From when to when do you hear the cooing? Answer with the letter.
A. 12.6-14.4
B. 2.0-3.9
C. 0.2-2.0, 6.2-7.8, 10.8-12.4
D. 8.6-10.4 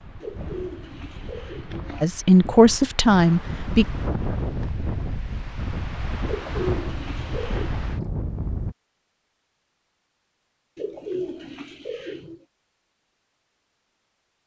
C.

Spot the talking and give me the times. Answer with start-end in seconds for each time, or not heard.
2.0-3.9.